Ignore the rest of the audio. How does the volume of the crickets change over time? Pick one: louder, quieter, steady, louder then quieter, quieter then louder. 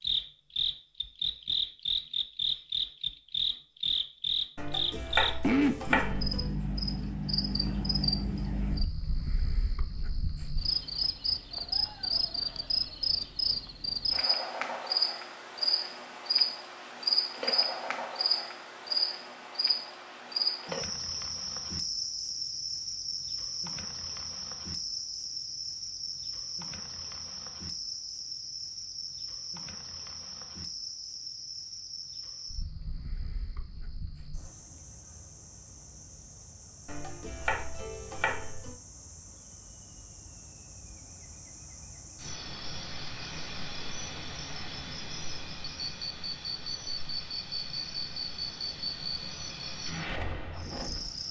quieter then louder.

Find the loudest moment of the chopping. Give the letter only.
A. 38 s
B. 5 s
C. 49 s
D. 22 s
B.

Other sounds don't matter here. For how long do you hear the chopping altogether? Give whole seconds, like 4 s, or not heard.
4 s.